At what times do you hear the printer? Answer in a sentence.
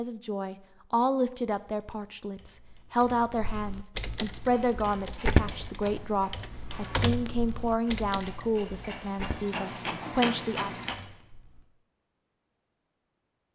The printer can be heard from 4.3 to 10.9 s.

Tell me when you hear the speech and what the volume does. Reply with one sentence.
You can hear the speech from 0.0 to 10.7 s, at a steady volume.